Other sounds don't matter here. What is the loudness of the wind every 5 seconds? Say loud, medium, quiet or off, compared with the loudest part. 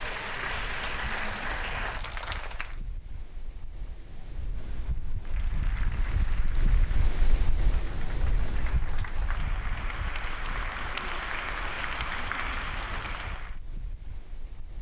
medium, loud, medium.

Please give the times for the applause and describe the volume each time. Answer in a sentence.
You can hear the applause briefly from 0.0 to 2.8 s; and from 5.2 to 13.6 s, getting louder.